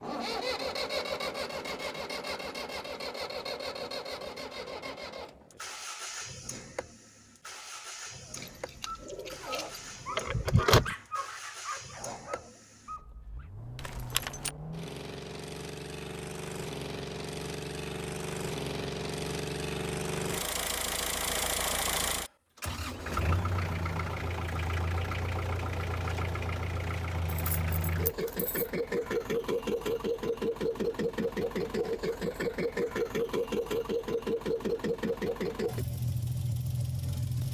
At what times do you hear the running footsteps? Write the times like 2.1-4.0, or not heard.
not heard.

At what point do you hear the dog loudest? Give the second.
11 s.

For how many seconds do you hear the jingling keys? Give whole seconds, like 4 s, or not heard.
5 s.